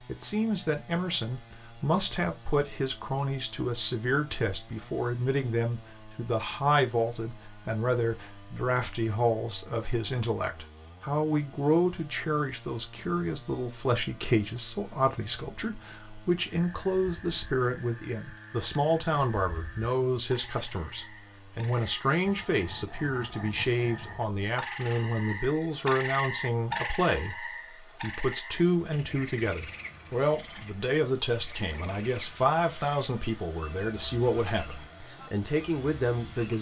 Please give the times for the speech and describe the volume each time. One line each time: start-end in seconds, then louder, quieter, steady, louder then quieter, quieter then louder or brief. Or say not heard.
0.1-36.5 steady.